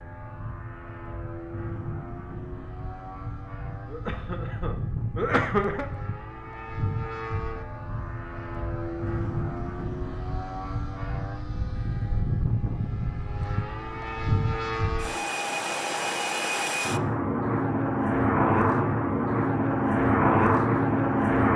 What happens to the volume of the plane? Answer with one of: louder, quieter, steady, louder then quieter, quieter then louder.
louder.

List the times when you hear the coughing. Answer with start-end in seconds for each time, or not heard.
3.9-5.8.